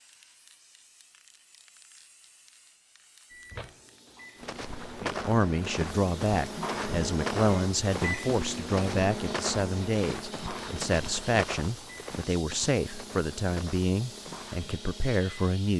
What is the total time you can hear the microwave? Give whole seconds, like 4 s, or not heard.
12 s.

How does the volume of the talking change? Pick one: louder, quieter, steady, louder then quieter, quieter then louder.
steady.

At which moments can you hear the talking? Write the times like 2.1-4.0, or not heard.
5.0-15.7.